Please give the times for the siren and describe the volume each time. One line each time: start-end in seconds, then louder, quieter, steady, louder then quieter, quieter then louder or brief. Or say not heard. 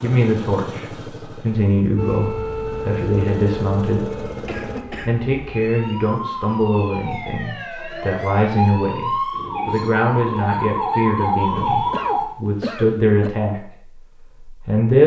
1.9-12.2 quieter then louder.